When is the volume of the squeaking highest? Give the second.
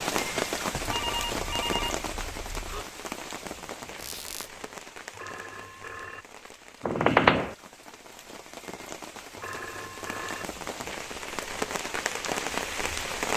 7 s.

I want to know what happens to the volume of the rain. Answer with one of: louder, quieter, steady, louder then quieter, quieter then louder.
quieter then louder.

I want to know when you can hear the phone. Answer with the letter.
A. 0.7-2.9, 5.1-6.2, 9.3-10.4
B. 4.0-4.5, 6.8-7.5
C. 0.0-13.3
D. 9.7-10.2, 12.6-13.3
A.